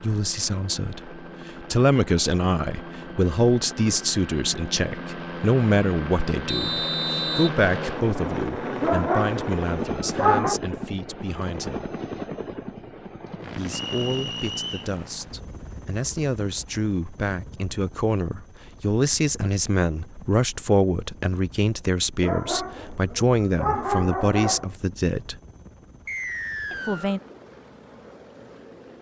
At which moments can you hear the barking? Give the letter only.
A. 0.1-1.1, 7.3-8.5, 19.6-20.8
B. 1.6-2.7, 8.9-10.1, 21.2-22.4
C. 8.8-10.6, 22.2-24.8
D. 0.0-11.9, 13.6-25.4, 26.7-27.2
C.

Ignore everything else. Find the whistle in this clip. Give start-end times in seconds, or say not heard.
6.5-7.5, 13.7-14.9, 26.1-27.2.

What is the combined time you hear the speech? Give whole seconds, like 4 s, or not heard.
24 s.